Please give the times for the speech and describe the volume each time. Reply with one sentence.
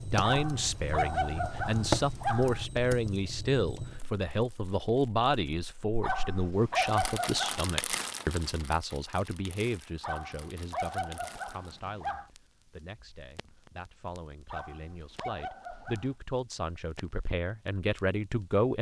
The speech can be heard from 0.0 to 18.7 s, getting quieter then louder.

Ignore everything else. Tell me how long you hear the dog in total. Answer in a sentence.
You can hear the dog for 8 seconds altogether.